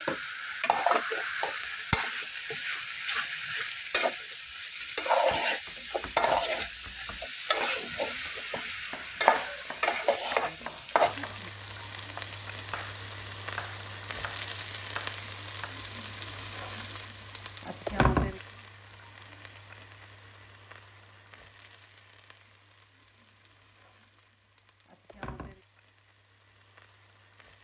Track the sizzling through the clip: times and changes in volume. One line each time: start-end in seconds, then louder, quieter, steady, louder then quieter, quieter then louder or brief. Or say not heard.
0.0-27.5 quieter.